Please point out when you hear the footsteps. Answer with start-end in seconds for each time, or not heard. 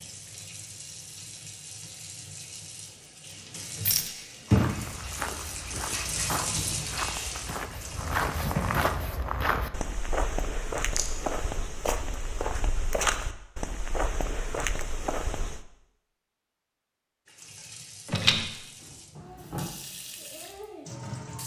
4.5-15.7.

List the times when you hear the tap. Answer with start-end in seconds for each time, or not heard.
0.0-8.9, 17.2-21.4.